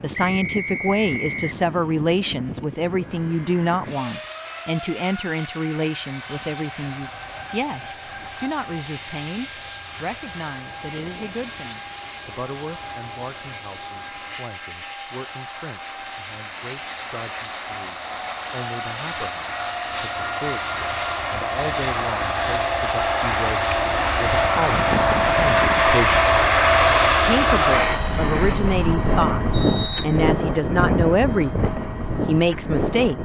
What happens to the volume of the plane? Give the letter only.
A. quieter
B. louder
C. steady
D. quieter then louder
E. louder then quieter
B.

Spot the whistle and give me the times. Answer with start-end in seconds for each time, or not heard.
0.1-1.6, 29.5-30.2.